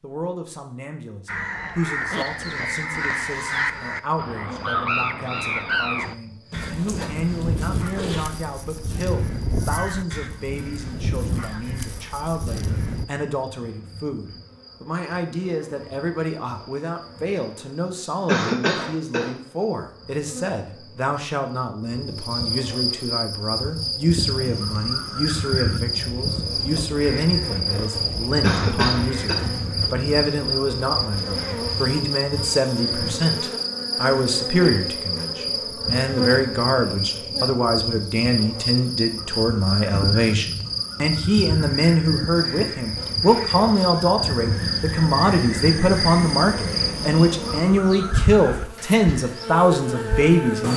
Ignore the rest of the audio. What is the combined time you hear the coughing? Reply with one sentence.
You can hear the coughing for 2 seconds altogether.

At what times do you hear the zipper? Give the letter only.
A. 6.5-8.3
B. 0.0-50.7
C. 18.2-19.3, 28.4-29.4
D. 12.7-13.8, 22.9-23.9
A.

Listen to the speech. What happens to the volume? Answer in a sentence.
The loudness of the speech goes up.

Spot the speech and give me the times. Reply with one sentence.
The speech can be heard from 0.0 to 50.7 s.